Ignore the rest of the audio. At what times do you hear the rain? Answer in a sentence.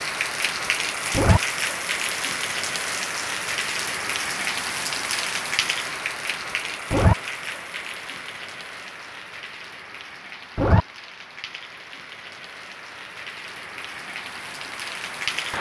The rain can be heard from 0.0 to 15.5 s.